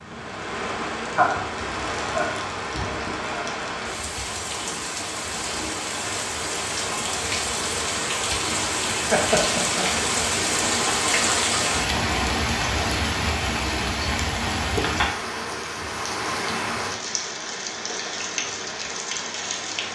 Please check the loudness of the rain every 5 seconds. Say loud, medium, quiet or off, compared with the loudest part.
medium, loud, loud, medium.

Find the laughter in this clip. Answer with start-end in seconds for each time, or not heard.
1.1-3.2, 9.1-9.8, 14.8-15.3.